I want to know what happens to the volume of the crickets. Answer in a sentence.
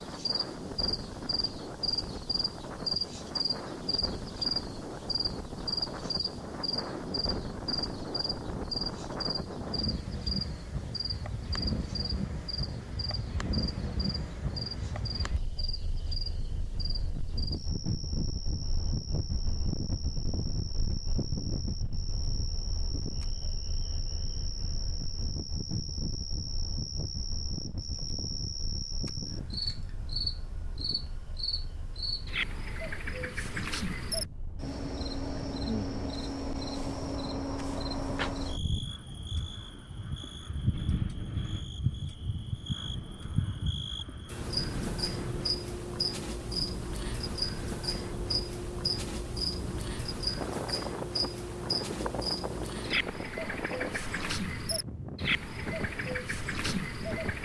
The volume of the crickets goes down, then up.